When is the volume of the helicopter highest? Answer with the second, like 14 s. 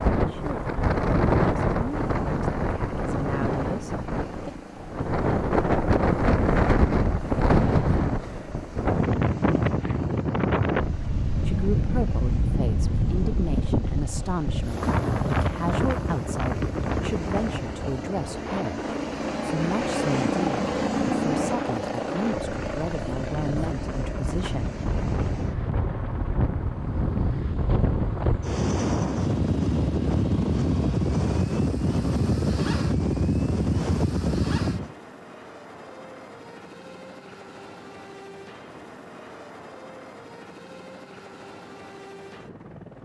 21 s.